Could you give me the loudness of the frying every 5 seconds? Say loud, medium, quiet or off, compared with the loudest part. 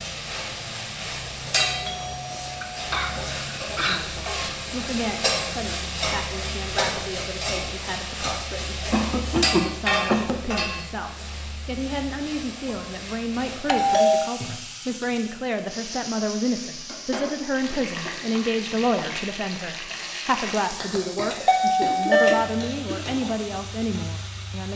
loud, loud, medium, medium, medium.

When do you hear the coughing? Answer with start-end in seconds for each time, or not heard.
2.6-4.2, 8.9-10.4, 21.8-23.1.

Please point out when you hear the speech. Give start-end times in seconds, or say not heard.
3.9-24.7.